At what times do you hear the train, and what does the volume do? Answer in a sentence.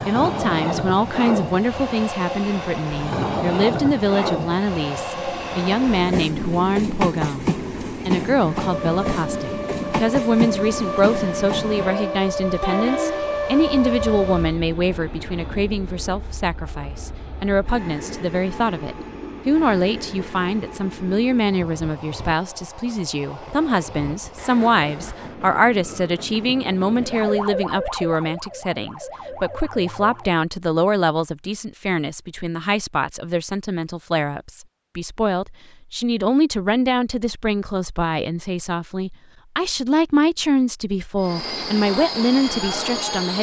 You can hear the train from 0.0 to 27.5 s, getting quieter; and briefly from 41.1 to 43.3 s.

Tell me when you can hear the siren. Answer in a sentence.
The siren can be heard from 8.5 to 14.6 s and from 27.0 to 30.4 s.